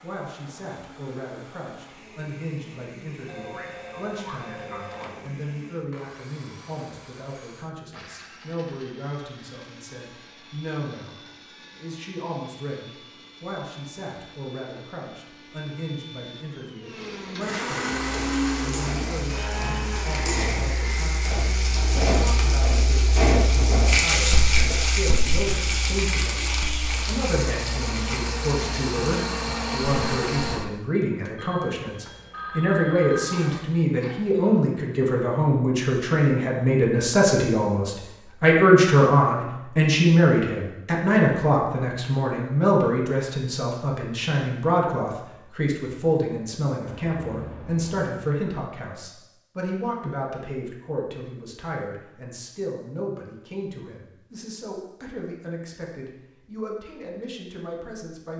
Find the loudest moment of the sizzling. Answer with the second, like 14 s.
24 s.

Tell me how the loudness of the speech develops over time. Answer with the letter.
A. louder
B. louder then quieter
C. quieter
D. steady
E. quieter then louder
B.